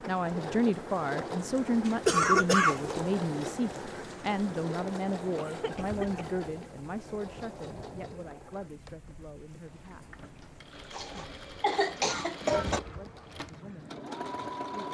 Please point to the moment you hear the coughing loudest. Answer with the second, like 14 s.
2 s.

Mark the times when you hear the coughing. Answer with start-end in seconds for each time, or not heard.
2.0-3.0, 5.3-6.5, 10.9-12.8.